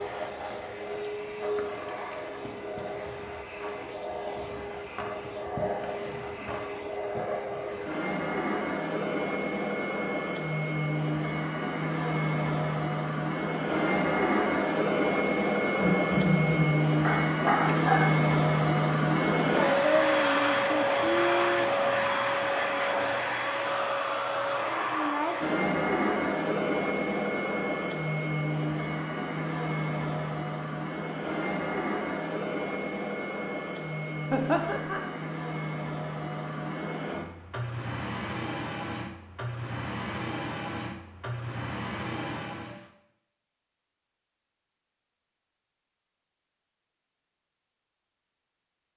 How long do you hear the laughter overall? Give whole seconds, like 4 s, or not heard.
2 s.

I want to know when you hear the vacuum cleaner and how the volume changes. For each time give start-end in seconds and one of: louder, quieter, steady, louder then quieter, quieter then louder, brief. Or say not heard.
0.0-42.9 louder then quieter.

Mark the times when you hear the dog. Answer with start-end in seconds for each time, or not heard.
17.0-18.2.